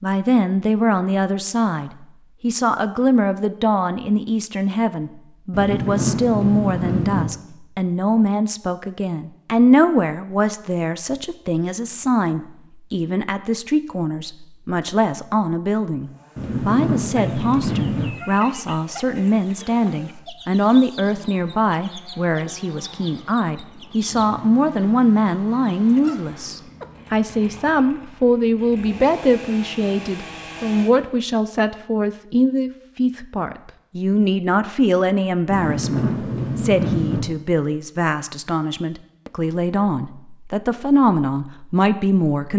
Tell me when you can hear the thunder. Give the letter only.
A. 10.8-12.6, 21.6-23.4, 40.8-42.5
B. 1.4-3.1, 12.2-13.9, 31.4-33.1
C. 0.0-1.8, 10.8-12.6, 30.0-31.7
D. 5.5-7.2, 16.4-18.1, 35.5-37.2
D.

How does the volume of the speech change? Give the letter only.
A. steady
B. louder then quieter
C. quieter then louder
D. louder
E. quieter
A.